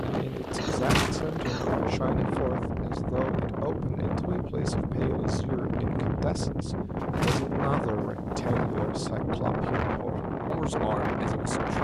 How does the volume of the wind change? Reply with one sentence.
The volume of the wind stays about the same.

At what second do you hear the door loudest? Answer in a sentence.
The volume of the door peaks at 1 second.